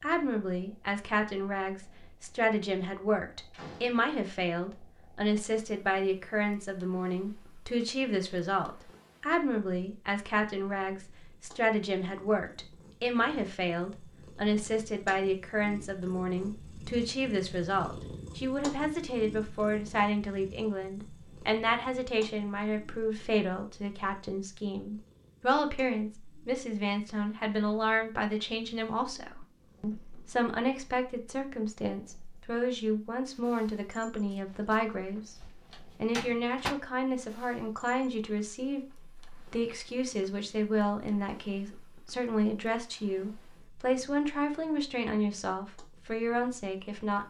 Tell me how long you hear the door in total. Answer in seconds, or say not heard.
3 s.